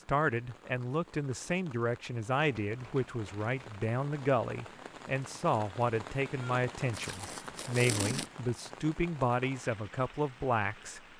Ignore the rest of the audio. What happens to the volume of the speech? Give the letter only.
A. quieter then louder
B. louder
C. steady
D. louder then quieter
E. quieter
C.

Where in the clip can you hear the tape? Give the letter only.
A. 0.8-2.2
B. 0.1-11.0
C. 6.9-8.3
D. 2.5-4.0
C.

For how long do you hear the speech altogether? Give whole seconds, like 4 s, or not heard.
11 s.